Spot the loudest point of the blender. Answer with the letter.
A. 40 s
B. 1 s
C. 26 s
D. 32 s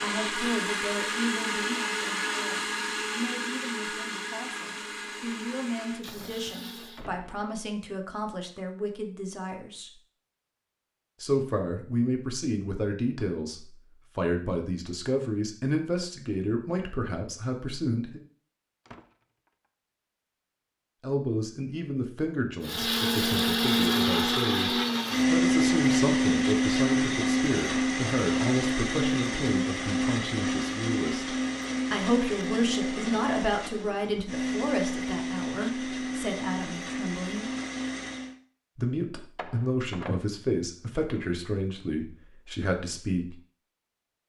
C.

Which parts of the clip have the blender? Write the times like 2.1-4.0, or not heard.
0.0-7.0, 22.6-38.4.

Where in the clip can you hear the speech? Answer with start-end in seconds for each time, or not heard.
0.0-9.9, 11.2-18.2, 21.0-24.7, 25.3-37.5, 38.8-43.4.